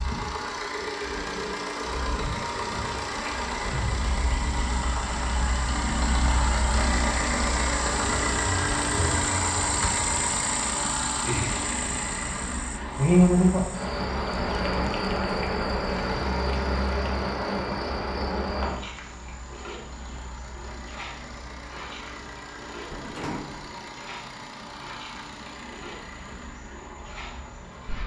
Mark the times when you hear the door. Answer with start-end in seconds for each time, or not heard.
22.9-23.8.